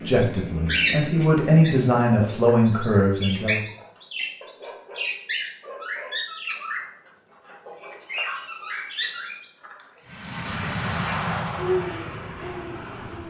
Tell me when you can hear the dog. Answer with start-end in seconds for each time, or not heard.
4.4-6.2.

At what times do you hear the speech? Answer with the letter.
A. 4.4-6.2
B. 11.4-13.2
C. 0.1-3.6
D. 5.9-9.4
C.